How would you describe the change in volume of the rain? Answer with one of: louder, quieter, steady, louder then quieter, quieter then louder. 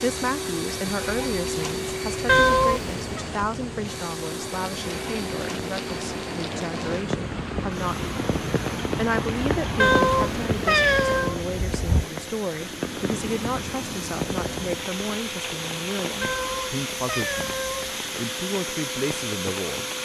louder then quieter.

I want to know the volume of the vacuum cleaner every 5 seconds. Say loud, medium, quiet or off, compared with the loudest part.
loud, medium, medium, loud.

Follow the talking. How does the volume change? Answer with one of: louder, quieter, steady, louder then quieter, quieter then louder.
steady.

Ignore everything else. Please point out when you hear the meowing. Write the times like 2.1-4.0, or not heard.
2.2-3.0, 9.8-11.3, 16.2-17.9.